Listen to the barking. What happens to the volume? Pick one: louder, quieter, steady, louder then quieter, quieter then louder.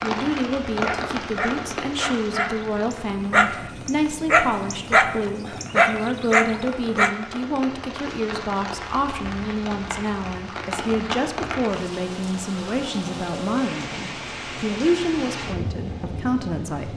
louder.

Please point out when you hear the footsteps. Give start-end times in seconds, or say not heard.
not heard.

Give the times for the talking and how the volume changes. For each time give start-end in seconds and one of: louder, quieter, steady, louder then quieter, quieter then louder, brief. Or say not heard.
0.0-16.9 steady.